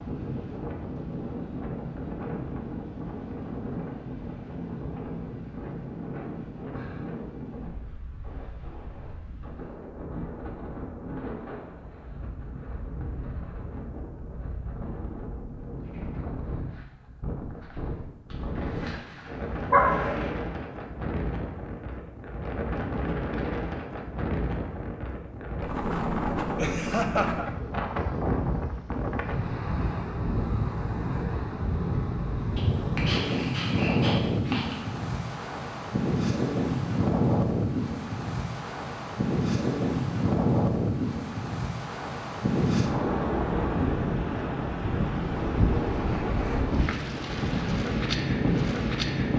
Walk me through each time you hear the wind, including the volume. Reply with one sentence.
You can hear the wind from 0.0 to 49.3 s, getting louder.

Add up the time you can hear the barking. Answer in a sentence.
You can hear the barking for 4 seconds altogether.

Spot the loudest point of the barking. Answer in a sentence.
The loudest moment of the barking is at 20 seconds.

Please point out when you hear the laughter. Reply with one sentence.
You can hear the laughter from 26.6 to 27.4 s.